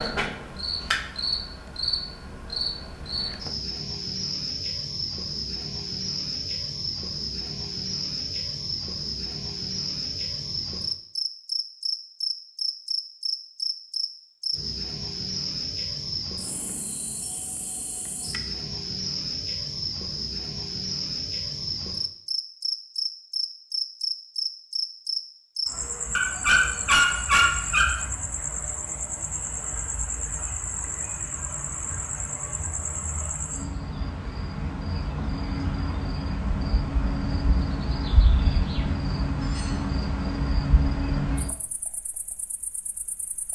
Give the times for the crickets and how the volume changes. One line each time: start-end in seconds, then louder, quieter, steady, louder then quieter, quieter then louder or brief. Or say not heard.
0.0-43.4 steady.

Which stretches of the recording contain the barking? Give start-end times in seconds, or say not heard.
26.1-28.0.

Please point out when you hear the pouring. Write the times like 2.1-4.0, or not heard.
not heard.